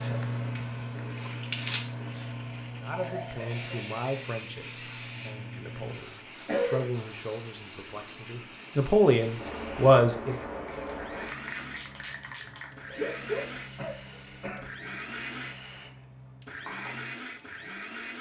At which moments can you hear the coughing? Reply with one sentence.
You can hear the coughing from 2.9 to 4.0 s, from 6.5 to 6.9 s and from 12.9 to 14.7 s.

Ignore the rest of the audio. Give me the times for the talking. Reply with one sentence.
The talking can be heard from 2.8 to 10.4 s.